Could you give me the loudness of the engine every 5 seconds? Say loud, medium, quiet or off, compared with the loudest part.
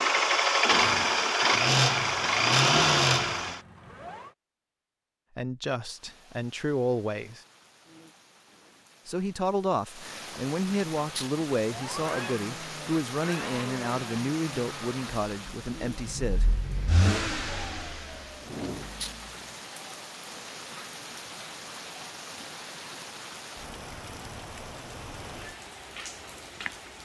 loud, off, quiet, quiet, off, off.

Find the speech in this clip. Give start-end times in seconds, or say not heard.
5.3-7.4, 9.1-16.6.